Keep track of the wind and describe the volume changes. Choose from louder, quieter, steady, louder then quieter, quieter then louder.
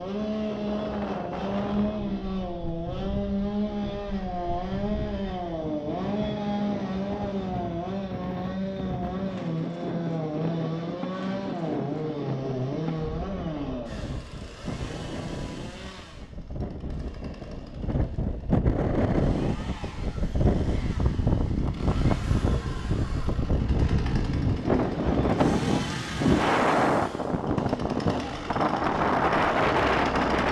louder.